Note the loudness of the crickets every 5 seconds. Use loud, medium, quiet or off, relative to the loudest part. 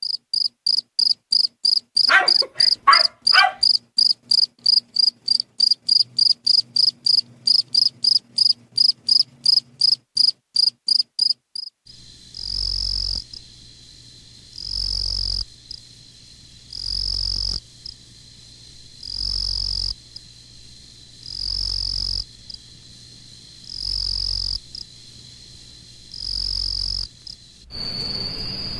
loud, loud, medium, quiet, quiet, quiet.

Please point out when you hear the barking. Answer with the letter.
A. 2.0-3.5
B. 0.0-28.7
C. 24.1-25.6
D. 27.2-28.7
A.